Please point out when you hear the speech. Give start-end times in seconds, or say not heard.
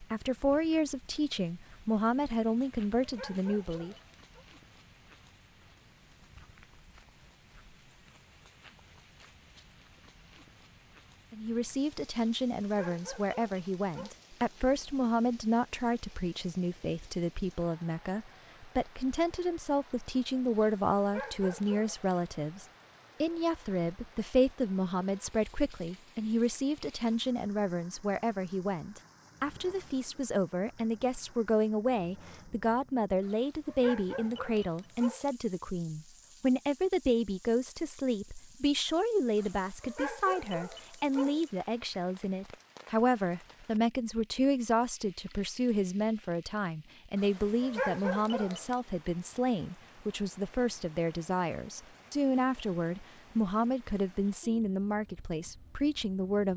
0.0-4.0, 11.3-56.5.